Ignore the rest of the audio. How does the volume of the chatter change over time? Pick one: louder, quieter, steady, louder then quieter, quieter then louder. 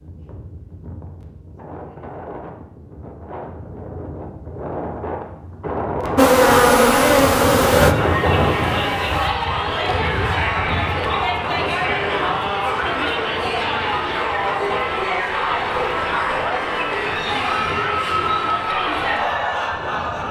steady.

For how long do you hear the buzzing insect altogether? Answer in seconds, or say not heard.
3 s.